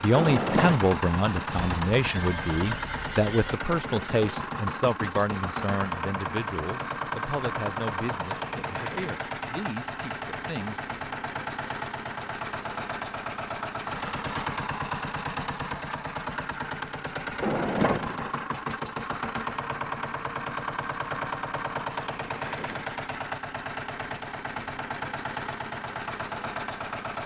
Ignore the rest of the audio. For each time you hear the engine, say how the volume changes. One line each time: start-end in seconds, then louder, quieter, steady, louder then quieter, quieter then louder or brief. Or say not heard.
0.0-27.2 steady.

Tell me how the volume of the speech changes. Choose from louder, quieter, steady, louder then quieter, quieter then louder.
quieter.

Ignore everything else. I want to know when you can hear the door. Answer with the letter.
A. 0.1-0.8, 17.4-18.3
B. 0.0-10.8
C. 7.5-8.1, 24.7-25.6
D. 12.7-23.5
A.